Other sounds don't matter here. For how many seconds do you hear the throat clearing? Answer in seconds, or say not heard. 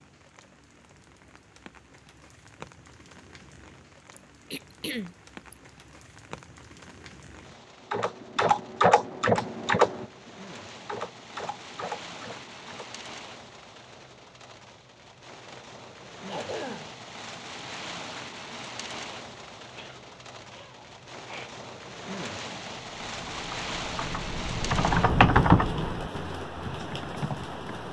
4 s.